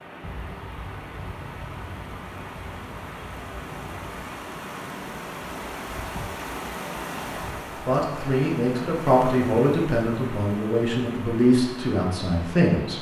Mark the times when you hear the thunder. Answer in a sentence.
You can hear the thunder from 0.2 to 4.2 s.